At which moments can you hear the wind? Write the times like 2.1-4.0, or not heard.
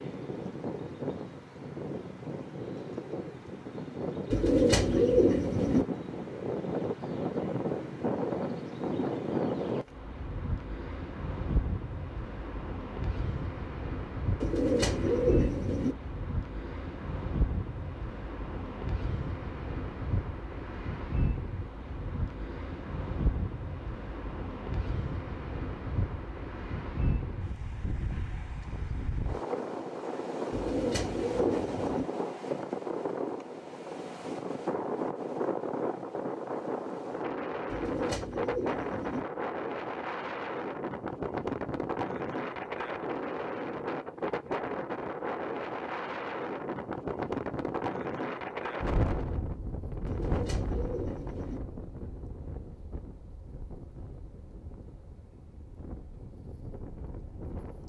0.0-57.8.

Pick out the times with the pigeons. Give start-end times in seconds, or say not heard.
4.3-5.8, 14.4-15.9, 30.5-32.0, 37.6-39.2, 50.0-51.6.